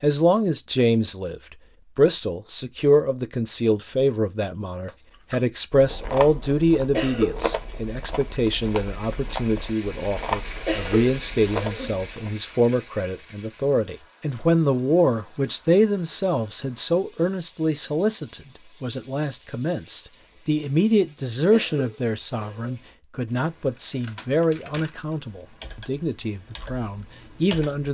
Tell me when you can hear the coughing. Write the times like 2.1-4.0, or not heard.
6.9-7.5, 10.7-12.1, 21.5-22.9.